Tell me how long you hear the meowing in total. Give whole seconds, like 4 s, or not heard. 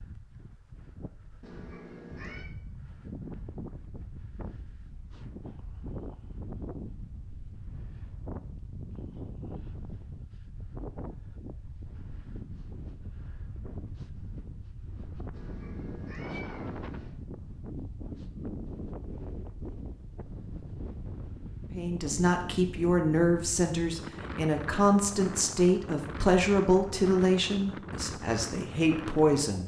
3 s.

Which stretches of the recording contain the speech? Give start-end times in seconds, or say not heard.
21.7-29.6.